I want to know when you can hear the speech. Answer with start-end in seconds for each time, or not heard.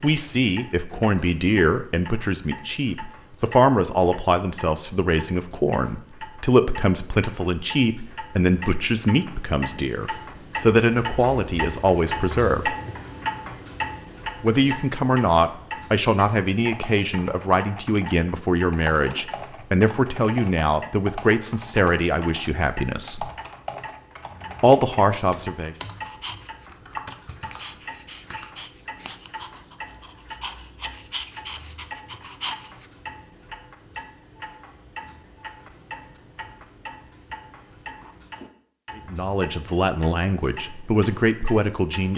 0.0-12.8, 14.4-23.3, 24.6-25.8, 39.0-42.1.